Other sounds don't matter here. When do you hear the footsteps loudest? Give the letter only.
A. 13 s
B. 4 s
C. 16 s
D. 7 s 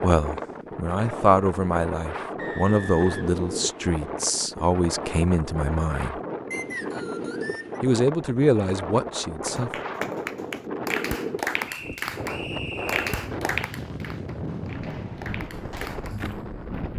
C.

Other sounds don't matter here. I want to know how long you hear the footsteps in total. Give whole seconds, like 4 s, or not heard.
2 s.